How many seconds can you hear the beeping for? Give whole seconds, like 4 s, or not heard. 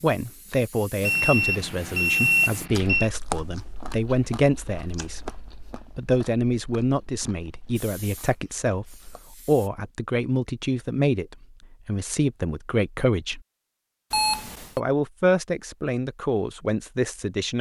3 s.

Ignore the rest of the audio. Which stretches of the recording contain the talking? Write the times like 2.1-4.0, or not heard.
0.0-5.2, 5.8-13.4, 14.8-17.5.